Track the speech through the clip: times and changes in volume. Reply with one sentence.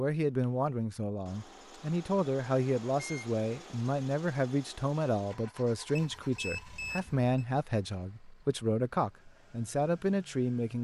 The speech can be heard from 0.0 to 10.7 s, at a steady volume.